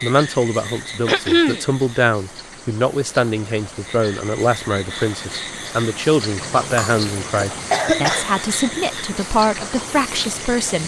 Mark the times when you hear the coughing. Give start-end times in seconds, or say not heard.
1.1-1.6, 6.4-8.2.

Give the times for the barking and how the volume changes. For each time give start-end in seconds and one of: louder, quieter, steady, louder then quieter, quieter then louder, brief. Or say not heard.
not heard.